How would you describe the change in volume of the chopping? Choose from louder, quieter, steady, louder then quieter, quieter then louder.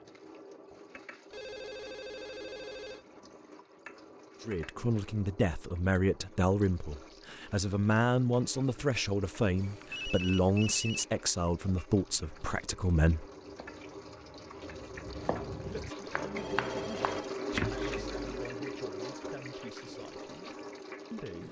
quieter then louder.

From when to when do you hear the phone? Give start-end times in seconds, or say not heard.
1.3-3.0, 9.6-11.1, 16.4-17.4.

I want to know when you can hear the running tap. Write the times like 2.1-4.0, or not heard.
0.0-21.4.